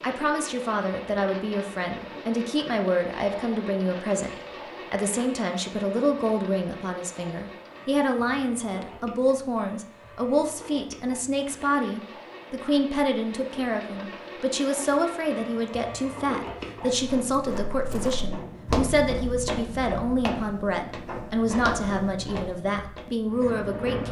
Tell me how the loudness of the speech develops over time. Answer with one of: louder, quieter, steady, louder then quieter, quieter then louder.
steady.